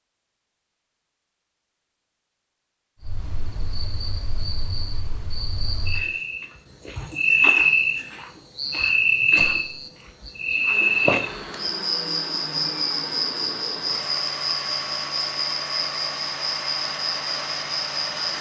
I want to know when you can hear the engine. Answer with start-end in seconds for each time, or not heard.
10.7-18.3.